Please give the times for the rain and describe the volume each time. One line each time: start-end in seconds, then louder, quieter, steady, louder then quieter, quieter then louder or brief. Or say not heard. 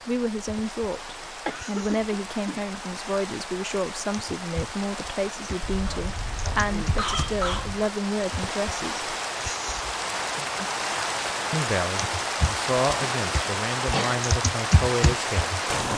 0.0-15.9 louder.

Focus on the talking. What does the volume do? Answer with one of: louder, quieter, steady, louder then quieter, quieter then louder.
steady.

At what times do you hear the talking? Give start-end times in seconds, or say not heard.
0.1-9.2, 11.5-15.9.